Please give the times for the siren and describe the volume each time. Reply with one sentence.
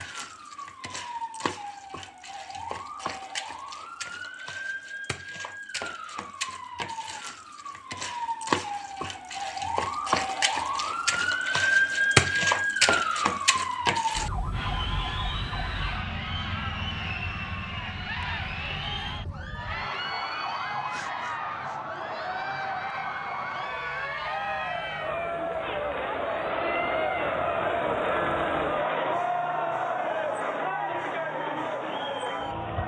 You can hear the siren from 0.0 to 32.8 s, getting louder then quieter.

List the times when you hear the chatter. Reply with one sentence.
You can hear the chatter from 14.5 to 32.8 s.